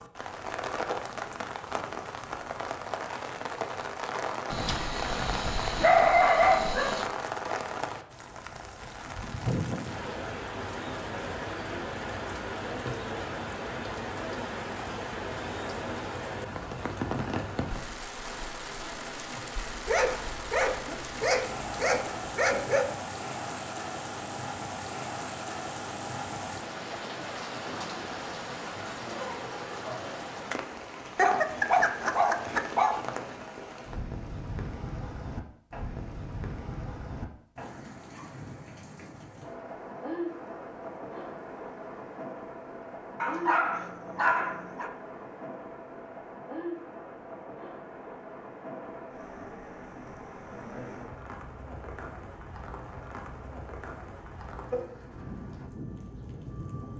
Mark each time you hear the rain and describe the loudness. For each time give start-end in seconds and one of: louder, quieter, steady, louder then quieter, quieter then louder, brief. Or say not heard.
0.0-56.9 quieter.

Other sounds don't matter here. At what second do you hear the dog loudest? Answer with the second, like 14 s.
6 s.